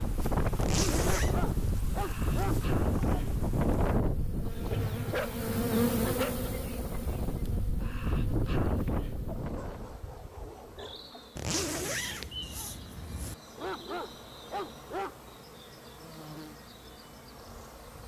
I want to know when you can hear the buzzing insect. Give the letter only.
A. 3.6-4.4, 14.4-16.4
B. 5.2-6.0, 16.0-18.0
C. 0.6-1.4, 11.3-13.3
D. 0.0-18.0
D.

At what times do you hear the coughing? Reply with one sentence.
The coughing can't be heard in this clip.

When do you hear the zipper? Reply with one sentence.
You can hear the zipper from 0.6 to 1.4 s and from 11.3 to 13.3 s.